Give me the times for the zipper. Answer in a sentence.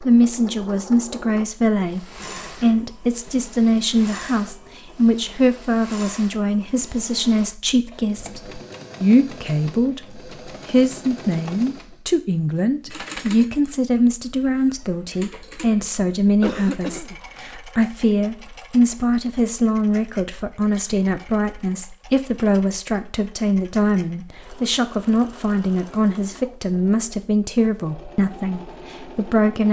The zipper can't be heard in this clip.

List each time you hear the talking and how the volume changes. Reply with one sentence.
You can hear the talking from 0.0 to 29.6 s, at a steady volume.